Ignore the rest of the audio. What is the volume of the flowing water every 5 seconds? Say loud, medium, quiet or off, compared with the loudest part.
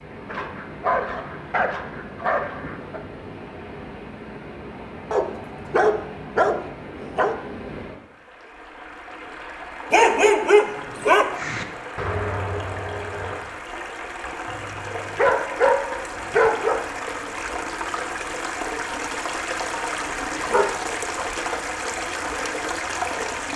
medium, medium, medium, loud, loud.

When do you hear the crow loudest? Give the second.
12 s.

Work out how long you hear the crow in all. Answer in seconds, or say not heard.
2 s.